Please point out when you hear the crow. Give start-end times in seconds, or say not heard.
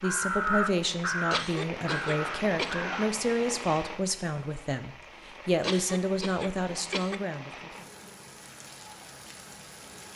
0.0-3.0.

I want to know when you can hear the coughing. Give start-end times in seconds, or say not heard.
1.3-2.9, 5.6-7.2.